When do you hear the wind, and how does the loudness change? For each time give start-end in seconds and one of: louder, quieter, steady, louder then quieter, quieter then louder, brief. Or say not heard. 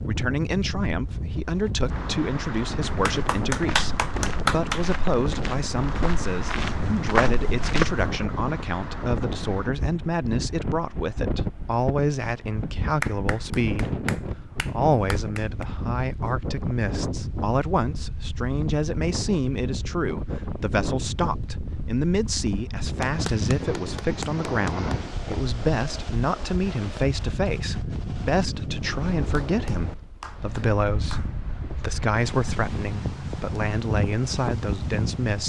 0.0-35.4 steady.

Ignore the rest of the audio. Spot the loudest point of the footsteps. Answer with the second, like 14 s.
7 s.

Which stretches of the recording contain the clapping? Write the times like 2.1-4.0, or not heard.
2.9-4.8, 13.0-15.7, 23.0-25.0, 29.4-31.4.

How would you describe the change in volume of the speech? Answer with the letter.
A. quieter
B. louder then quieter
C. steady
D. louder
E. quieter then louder
C.